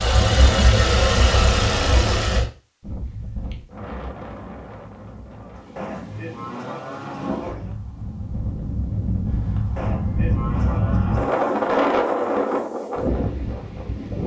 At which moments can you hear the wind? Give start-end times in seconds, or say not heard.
2.8-14.2.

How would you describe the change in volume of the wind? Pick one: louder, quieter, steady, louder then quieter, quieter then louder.
louder.